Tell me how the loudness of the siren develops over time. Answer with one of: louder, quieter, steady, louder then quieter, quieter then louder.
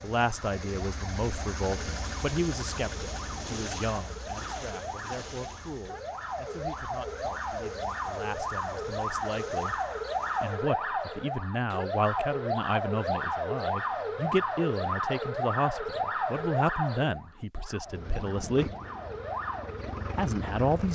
louder then quieter.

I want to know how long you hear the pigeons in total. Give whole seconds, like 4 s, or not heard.
not heard.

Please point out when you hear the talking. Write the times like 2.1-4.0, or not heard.
0.0-9.8, 10.4-18.7, 20.1-20.8.